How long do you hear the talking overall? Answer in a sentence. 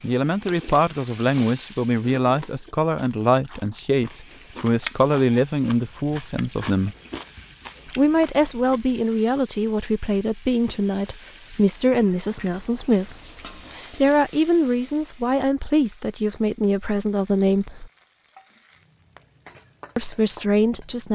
The talking can be heard for 18 seconds in total.